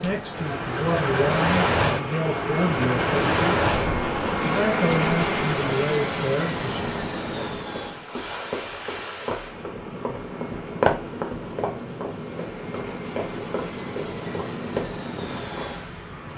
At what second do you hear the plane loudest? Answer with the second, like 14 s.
5 s.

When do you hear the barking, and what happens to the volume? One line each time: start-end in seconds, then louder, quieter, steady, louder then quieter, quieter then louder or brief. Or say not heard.
not heard.